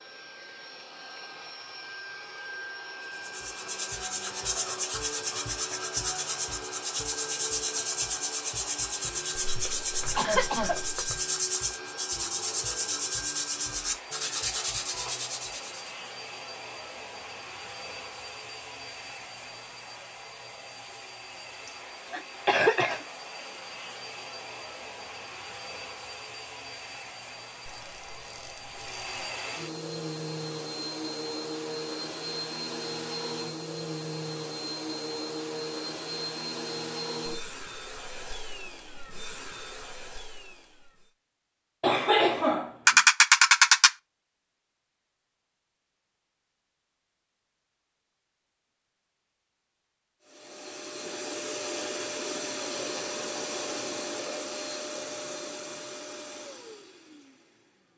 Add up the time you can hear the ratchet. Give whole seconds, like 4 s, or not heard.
4 s.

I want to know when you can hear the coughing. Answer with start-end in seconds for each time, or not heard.
10.2-10.8, 21.6-23.1, 41.8-43.0.